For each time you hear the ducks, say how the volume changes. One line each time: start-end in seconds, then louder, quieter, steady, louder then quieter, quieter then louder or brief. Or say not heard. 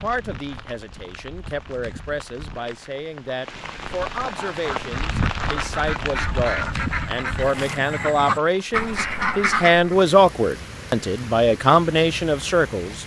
4.3-9.9 louder.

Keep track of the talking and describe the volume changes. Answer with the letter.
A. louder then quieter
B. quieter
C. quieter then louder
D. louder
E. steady
D.